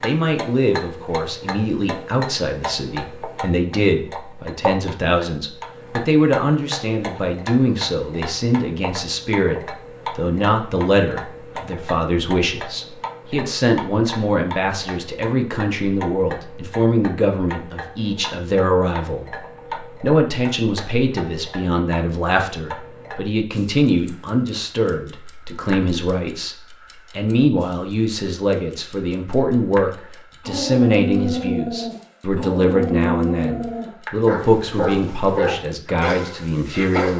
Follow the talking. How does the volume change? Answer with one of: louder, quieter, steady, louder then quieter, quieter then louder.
steady.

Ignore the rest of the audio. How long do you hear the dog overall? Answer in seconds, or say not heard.
7 s.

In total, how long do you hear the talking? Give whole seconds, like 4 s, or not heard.
37 s.